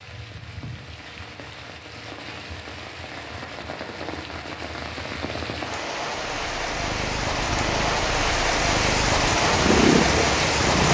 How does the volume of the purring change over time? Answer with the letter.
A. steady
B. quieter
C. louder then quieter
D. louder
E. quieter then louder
D.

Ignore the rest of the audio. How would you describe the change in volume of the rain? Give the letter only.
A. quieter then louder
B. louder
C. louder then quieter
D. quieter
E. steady
B.